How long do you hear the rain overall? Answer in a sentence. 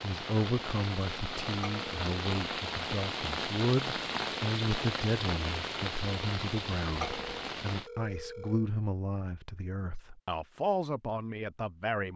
You can hear the rain for 8 seconds altogether.